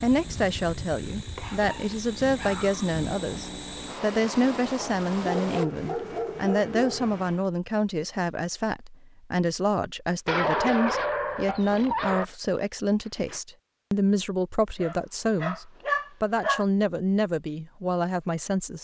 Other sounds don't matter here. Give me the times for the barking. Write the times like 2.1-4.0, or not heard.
1.4-2.9, 5.0-7.5, 10.2-12.2, 14.8-16.6.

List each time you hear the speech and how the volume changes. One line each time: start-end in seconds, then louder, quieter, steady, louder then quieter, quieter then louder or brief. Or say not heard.
0.0-18.7 steady.